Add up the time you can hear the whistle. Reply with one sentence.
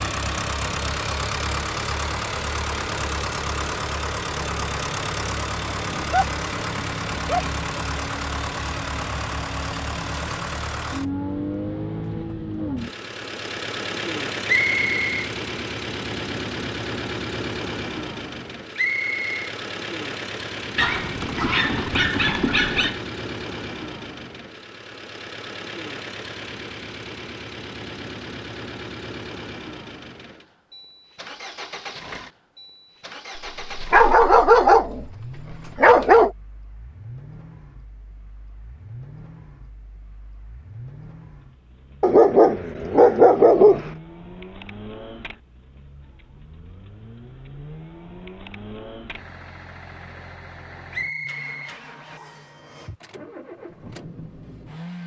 The whistle can be heard for 3 seconds in total.